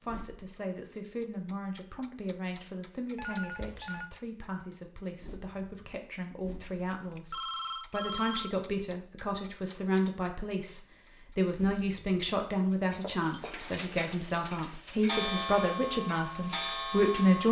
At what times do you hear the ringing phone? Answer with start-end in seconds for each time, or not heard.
3.1-4.1, 6.7-8.6, 13.0-13.6.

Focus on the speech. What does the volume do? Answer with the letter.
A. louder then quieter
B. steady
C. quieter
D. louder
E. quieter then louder
D.